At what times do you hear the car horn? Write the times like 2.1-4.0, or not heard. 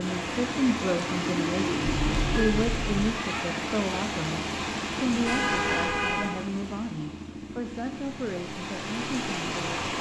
1.8-3.1, 5.2-6.3.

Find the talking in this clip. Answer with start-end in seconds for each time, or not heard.
0.0-9.9.